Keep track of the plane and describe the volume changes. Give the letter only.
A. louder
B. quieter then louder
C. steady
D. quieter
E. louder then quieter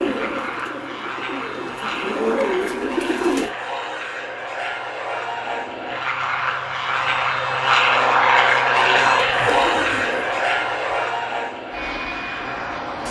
E.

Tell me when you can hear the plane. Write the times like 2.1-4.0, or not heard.
0.0-13.0.